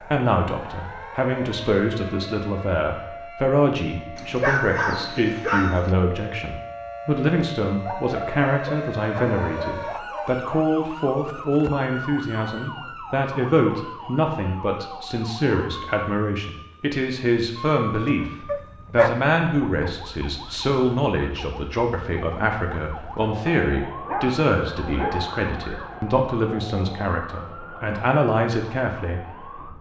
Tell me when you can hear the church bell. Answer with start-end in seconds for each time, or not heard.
not heard.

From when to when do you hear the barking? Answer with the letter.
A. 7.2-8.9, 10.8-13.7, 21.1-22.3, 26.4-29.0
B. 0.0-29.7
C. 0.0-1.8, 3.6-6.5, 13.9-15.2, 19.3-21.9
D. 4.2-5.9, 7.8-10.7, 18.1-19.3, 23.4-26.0
D.